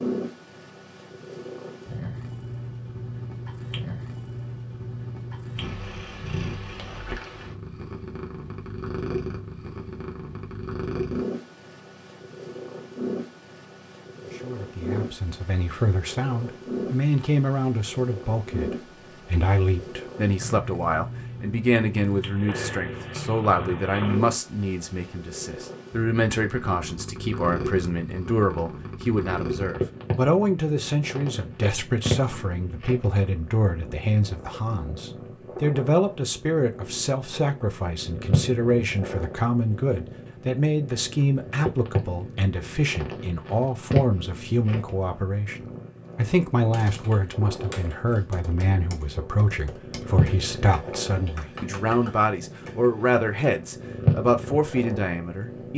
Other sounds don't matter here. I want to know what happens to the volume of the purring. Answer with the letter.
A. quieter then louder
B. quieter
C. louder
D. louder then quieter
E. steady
E.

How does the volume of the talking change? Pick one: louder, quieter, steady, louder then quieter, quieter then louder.
steady.